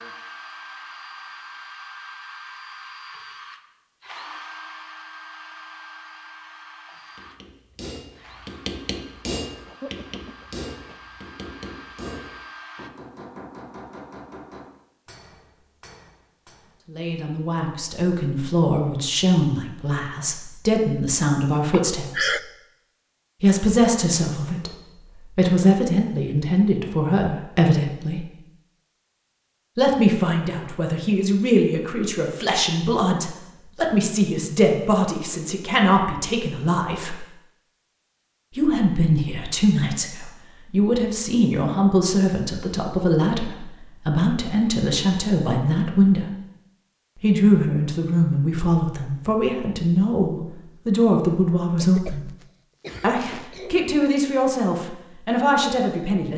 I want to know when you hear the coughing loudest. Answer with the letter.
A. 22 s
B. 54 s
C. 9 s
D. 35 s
A.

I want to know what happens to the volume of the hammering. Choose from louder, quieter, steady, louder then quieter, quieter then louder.
quieter.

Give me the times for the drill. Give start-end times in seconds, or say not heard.
0.0-12.9.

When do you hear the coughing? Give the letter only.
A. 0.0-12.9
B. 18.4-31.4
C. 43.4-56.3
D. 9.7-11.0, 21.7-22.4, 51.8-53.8
D.